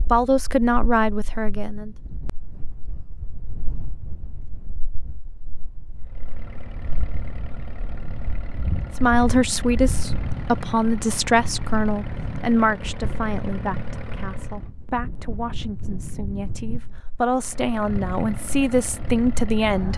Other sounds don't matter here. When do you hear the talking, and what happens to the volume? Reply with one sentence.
You can hear the talking briefly from 0.1 to 1.9 s; and from 9.0 to 19.9 s, getting quieter then louder.